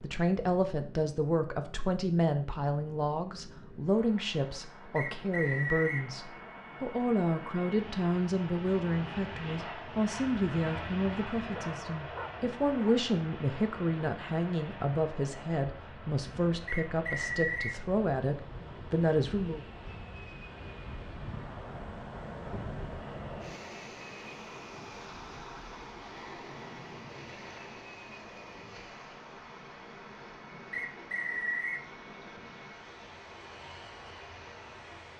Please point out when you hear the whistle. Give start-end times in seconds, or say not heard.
5.0-6.0, 16.6-17.8, 30.7-31.9.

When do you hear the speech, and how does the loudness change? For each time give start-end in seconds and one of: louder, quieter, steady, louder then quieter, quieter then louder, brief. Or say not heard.
0.0-19.6 steady.